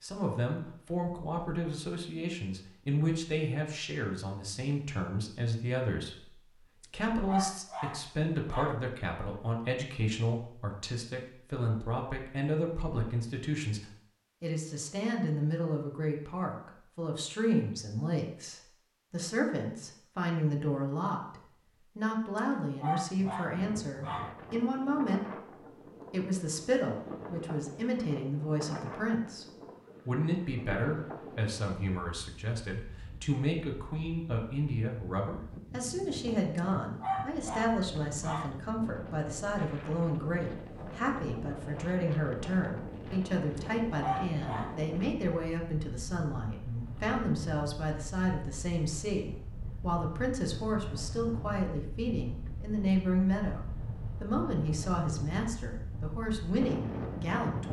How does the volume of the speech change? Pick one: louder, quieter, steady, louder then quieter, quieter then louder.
steady.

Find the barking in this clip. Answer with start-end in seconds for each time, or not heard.
6.8-8.8, 22.4-24.3, 36.5-38.5, 43.5-44.8.